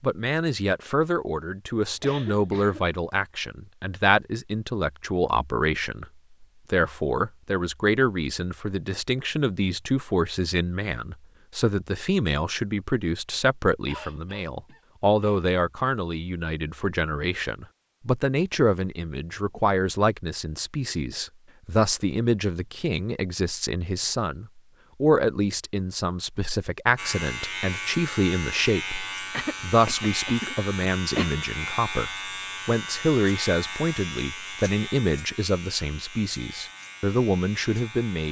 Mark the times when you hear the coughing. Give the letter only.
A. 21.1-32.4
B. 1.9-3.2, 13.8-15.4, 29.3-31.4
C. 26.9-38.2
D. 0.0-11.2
B.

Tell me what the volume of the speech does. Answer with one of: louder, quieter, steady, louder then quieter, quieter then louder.
steady.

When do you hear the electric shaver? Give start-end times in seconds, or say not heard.
26.9-38.2.